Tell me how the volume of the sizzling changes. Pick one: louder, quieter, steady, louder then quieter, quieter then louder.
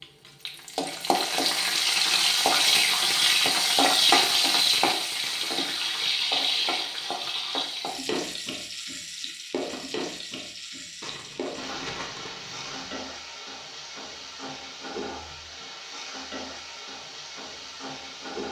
quieter.